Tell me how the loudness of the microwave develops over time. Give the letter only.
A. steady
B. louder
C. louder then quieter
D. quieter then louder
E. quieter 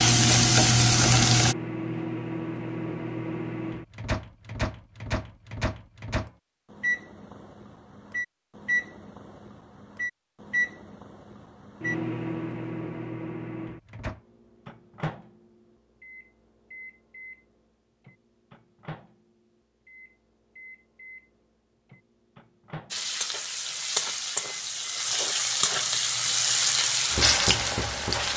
E.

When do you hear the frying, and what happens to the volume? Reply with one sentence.
You can hear the frying briefly from 0.0 to 1.6 s; and from 22.9 to 28.3 s, getting louder.